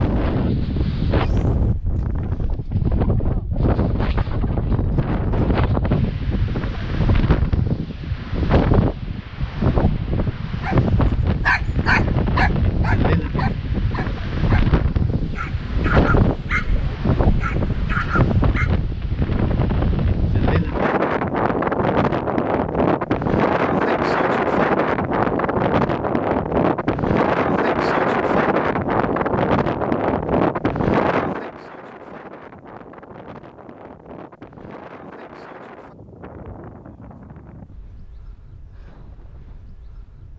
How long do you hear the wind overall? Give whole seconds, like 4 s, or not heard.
40 s.